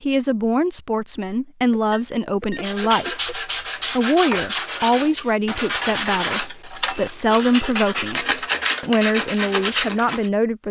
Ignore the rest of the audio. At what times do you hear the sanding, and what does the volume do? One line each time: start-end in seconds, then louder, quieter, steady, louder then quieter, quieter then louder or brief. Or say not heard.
2.6-10.3 steady.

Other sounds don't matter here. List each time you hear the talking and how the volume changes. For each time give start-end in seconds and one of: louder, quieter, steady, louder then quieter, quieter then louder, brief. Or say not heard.
0.0-10.6 steady.